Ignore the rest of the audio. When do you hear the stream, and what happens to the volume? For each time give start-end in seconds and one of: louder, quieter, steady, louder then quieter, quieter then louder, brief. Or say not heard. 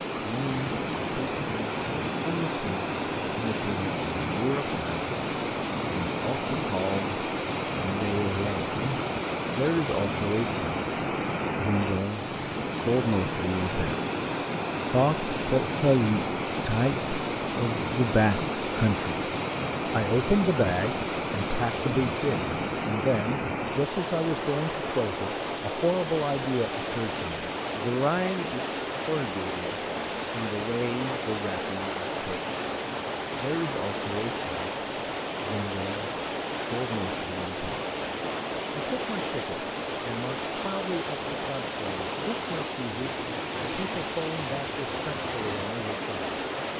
0.0-46.7 steady.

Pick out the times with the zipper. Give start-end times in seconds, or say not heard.
not heard.